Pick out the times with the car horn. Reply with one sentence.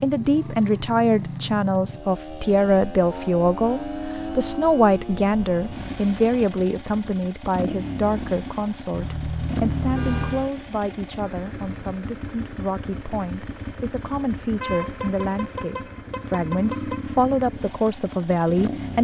You can hear the car horn from 3.0 to 4.5 s, from 8.9 to 10.5 s and from 14.6 to 17.0 s.